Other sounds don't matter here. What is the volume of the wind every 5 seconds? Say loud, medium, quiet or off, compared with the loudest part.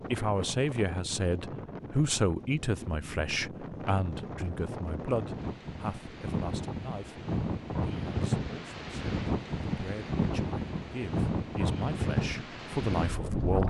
medium, loud, loud.